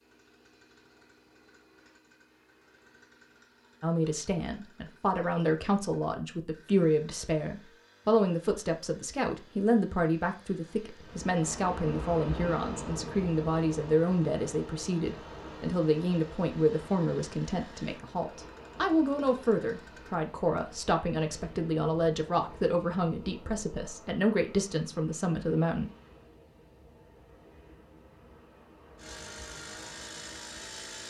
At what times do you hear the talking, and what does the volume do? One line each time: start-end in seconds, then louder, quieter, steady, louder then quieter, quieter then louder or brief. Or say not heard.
3.8-25.9 steady.